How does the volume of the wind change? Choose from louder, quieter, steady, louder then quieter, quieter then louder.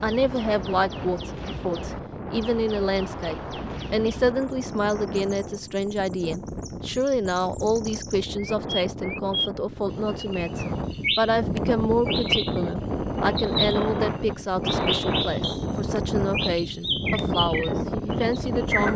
louder.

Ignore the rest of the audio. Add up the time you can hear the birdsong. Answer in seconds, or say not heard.
19 s.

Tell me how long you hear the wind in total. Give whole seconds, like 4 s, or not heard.
19 s.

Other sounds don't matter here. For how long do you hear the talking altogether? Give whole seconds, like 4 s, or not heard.
19 s.